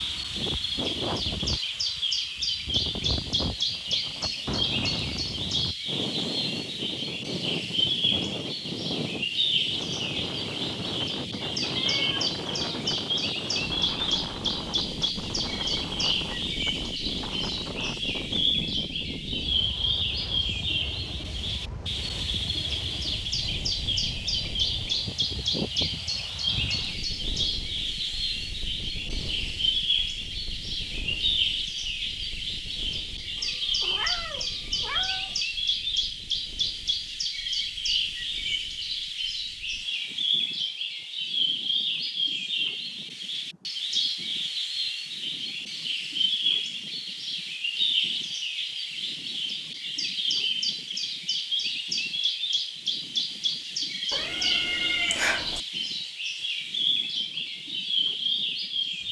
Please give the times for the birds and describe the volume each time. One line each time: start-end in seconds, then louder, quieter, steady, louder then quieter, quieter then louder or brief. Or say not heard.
0.0-59.0 steady.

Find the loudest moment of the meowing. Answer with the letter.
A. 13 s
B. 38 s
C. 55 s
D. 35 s
C.